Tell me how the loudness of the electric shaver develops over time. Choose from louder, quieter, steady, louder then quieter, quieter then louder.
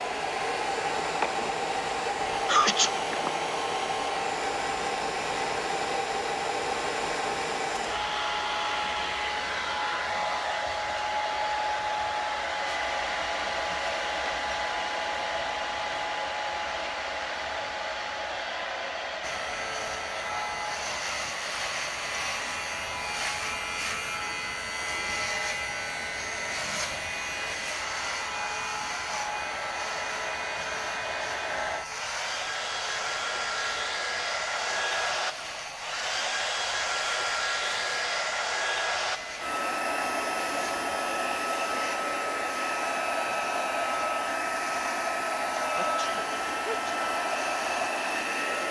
quieter.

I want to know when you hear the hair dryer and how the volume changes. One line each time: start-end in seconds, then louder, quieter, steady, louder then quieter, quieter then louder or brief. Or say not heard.
0.0-48.6 quieter then louder.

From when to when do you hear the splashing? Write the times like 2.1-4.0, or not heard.
not heard.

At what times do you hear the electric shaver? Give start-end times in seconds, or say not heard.
19.2-48.6.